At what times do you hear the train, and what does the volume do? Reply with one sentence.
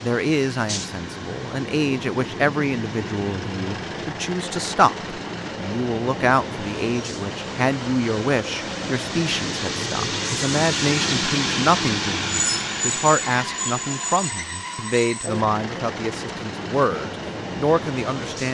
You can hear the train from 0.0 to 18.4 s, getting louder then quieter.